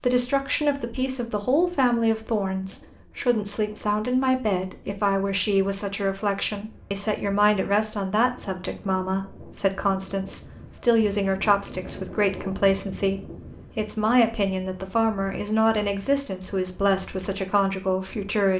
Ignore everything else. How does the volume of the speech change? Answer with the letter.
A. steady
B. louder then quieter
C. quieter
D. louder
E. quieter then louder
A.